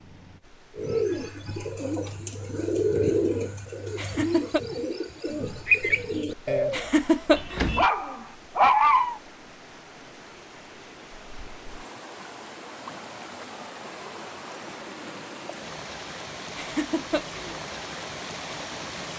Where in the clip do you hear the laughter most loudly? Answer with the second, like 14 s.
7 s.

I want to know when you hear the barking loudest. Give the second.
9 s.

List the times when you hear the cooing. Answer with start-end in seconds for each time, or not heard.
0.8-6.9.